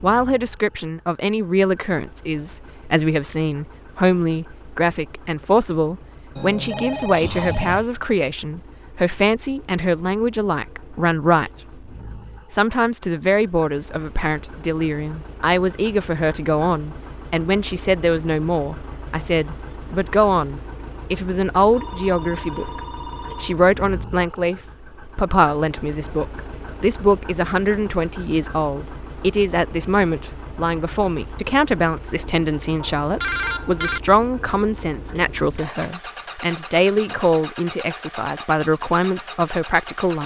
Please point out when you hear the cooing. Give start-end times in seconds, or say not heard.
not heard.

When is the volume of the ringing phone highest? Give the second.
33 s.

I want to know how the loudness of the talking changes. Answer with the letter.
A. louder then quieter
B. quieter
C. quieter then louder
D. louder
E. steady
E.